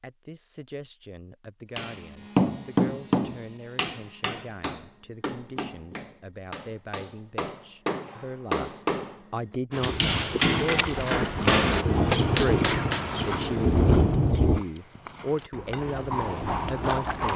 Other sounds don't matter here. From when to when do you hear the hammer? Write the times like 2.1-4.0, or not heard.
1.8-13.2.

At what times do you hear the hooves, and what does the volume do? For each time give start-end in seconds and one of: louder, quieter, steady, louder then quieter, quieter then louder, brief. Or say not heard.
9.7-17.3 quieter then louder.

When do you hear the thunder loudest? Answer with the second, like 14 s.
14 s.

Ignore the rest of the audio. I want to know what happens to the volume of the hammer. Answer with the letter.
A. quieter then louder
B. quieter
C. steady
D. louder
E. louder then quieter
A.